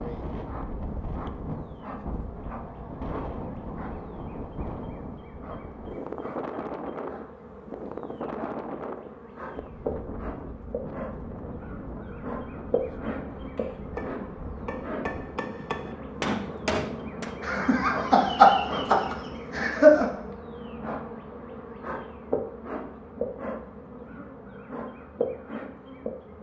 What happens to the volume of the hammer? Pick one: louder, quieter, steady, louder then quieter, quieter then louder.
louder.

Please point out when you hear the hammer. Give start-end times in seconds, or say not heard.
13.3-17.4.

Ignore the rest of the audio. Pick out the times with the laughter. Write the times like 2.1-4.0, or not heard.
17.4-20.1.